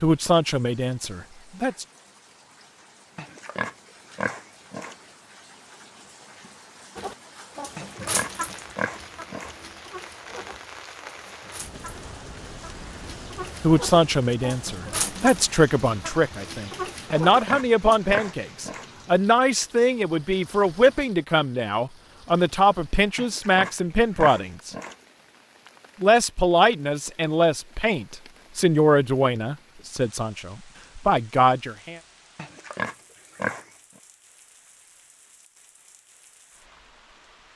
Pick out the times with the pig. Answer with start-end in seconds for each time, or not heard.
3.1-5.0, 7.8-9.6, 17.3-18.9, 23.1-24.9, 32.4-33.6.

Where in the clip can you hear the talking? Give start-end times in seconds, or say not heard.
0.0-1.9, 13.6-24.7, 26.0-32.0.